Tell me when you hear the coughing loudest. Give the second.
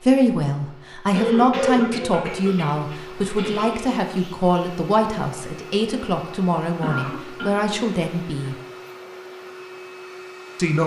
2 s.